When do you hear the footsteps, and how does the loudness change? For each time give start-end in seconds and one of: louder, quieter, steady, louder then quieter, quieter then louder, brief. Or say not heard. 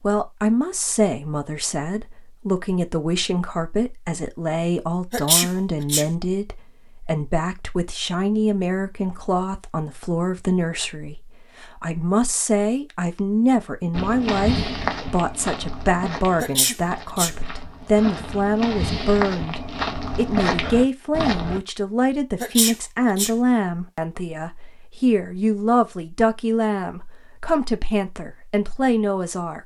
13.9-21.6 quieter then louder.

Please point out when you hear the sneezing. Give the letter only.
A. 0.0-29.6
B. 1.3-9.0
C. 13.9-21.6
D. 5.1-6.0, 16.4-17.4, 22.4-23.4
D.